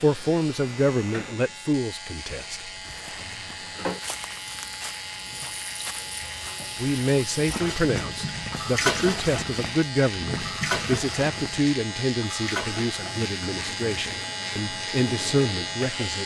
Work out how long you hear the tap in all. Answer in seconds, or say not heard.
16 s.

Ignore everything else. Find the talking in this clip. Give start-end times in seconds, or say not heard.
0.0-2.6, 6.8-16.2.